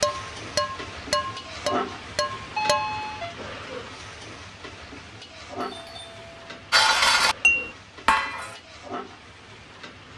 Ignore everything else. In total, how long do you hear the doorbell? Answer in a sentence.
The doorbell can be heard for 2 seconds in total.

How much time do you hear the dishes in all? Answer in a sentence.
The dishes can be heard for 5 seconds in total.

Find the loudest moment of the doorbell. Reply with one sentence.
The loudest moment of the doorbell is at 3 seconds.